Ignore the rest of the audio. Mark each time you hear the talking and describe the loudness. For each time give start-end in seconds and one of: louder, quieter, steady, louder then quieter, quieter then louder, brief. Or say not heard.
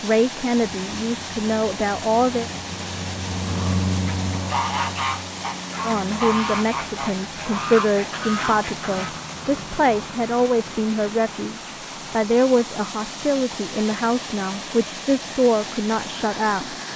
0.0-2.5 brief
5.8-16.8 steady.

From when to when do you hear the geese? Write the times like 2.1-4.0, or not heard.
4.0-9.5.